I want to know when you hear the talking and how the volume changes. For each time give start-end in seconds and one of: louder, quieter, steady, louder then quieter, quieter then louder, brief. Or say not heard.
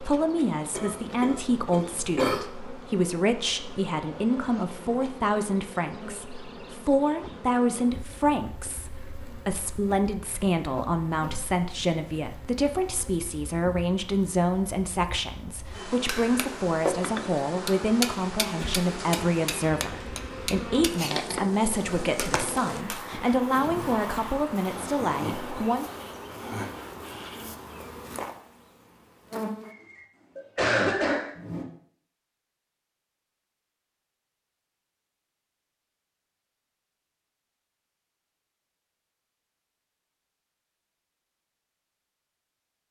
0.0-25.9 steady.